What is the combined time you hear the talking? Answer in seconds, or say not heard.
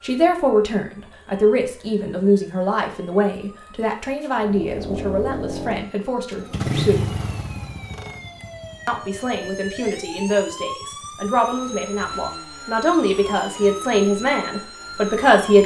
14 s.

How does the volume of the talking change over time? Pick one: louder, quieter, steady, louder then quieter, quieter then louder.
quieter then louder.